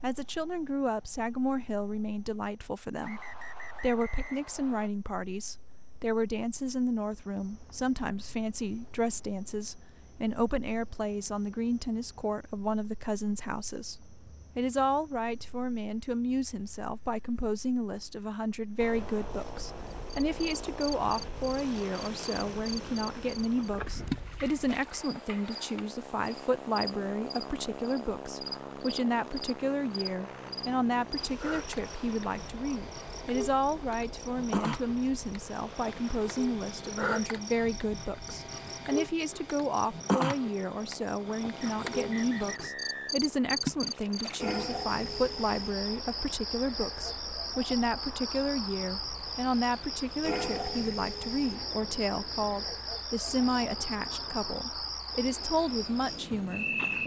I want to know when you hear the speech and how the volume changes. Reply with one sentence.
You can hear the speech from 0.0 to 57.0 s, at a steady volume.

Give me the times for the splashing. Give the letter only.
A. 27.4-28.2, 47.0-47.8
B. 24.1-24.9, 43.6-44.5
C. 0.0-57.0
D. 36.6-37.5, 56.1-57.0
B.